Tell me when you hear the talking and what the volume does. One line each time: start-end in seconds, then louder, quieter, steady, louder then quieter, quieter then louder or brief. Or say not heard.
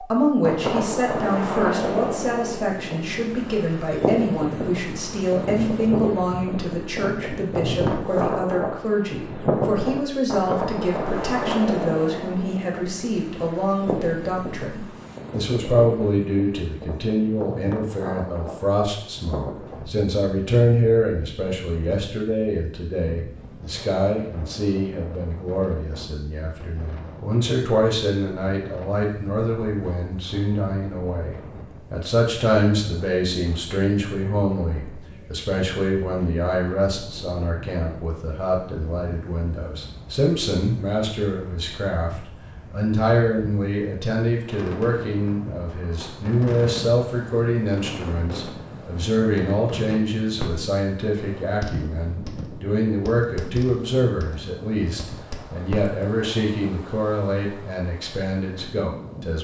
0.0-59.3 steady.